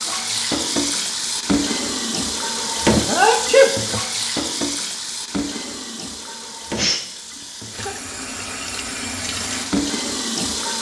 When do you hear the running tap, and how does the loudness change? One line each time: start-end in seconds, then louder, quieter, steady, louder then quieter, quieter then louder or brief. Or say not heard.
0.0-10.7 quieter then louder.